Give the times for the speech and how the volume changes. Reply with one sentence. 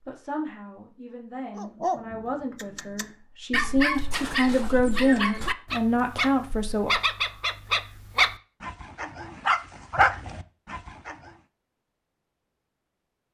The speech can be heard from 0.0 to 6.9 s, getting louder.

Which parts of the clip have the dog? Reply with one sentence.
You can hear the dog from 1.6 to 11.3 s.